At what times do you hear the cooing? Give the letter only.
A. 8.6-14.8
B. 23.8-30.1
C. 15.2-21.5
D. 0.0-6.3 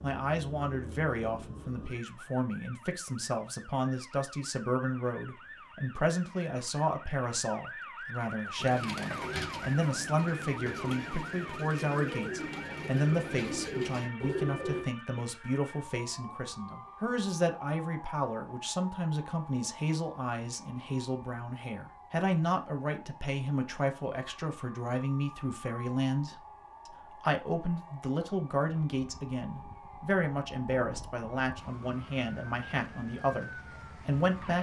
A.